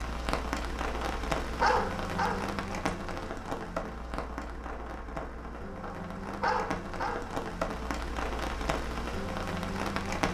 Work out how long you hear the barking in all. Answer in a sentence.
You can hear the barking for 3 seconds altogether.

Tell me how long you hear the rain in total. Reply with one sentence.
The rain can be heard for 10 seconds in total.